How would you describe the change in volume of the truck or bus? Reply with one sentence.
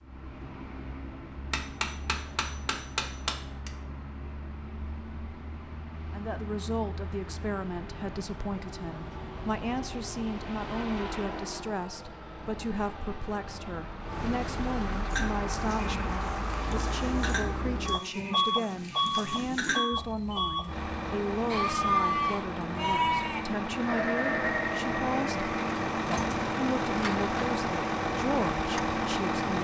The loudness of the truck or bus goes up.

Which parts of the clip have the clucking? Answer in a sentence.
You can't hear the clucking here.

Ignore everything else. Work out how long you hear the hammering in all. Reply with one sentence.
The hammering can be heard for 2 seconds in total.